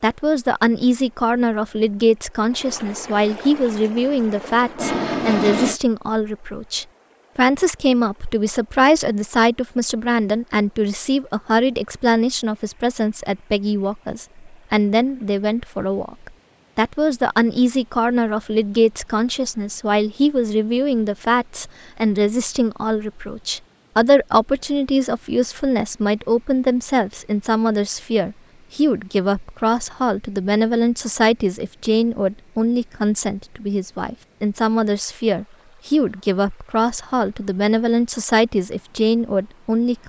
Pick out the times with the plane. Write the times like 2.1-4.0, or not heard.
3.5-5.8.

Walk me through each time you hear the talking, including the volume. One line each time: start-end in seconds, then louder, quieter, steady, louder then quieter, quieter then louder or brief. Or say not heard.
0.0-40.0 steady.